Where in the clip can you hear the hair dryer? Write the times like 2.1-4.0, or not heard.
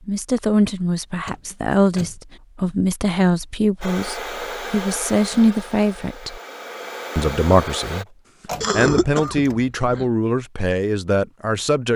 3.8-8.1.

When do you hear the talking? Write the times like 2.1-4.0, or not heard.
0.1-6.4, 7.2-8.1, 8.8-11.9.